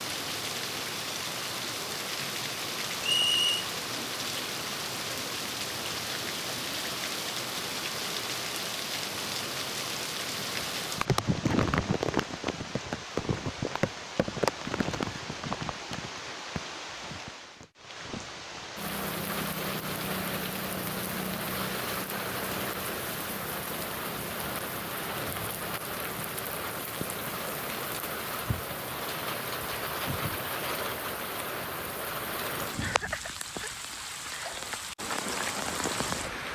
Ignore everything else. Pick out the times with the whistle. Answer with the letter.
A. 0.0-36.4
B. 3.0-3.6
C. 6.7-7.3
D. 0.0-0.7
B.